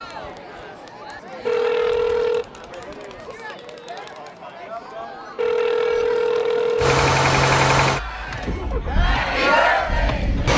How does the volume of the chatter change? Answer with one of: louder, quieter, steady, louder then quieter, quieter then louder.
louder.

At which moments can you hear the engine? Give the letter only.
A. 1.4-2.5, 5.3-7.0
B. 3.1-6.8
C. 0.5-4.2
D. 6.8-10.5
D.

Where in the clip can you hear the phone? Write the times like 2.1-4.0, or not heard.
1.4-2.5, 5.3-7.0.